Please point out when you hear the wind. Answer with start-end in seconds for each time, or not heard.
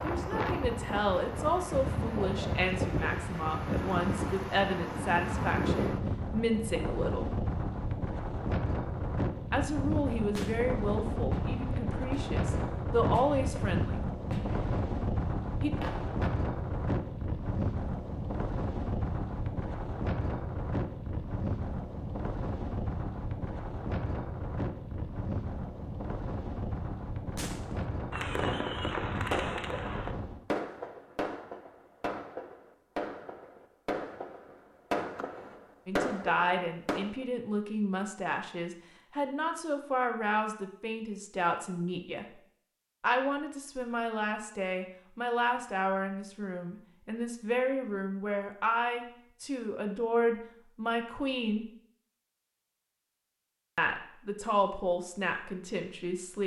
0.0-30.4.